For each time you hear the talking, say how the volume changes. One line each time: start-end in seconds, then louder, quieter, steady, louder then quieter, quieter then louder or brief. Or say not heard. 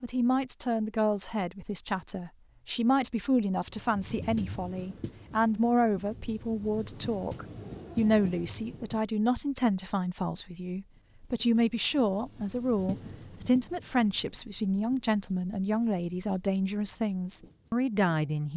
0.0-18.5 steady.